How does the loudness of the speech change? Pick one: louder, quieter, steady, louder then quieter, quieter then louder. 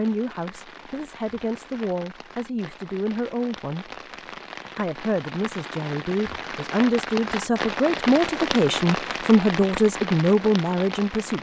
louder.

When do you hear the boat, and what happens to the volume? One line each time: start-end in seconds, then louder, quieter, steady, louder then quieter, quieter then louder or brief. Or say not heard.
not heard.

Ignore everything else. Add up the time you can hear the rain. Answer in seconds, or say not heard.
11 s.